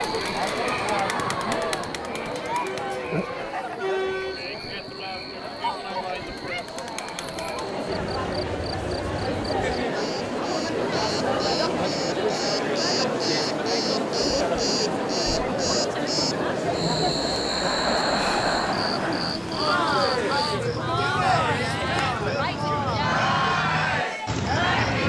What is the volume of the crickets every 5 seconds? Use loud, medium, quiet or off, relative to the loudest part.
medium, medium, loud, loud, loud.